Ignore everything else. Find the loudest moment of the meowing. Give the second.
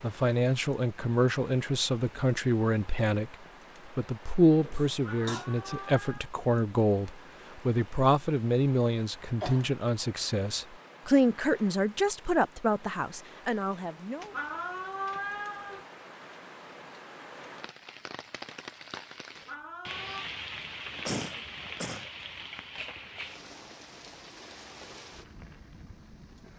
15 s.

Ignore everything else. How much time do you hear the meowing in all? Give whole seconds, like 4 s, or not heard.
4 s.